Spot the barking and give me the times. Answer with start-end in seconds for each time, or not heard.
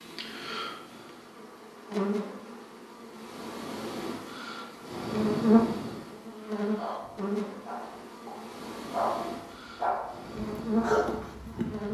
6.8-11.8.